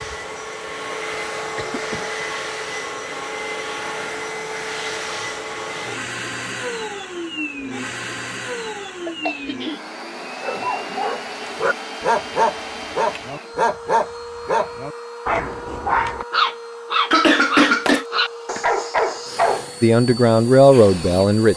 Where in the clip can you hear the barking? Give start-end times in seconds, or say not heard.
10.4-19.7.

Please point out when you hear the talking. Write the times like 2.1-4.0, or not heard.
19.8-21.5.